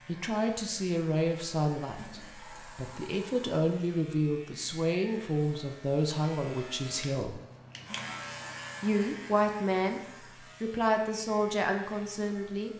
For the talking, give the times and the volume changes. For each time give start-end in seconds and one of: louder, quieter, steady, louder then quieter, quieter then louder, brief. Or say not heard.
0.1-7.4 quieter then louder
8.8-10.0 brief
10.6-12.7 brief.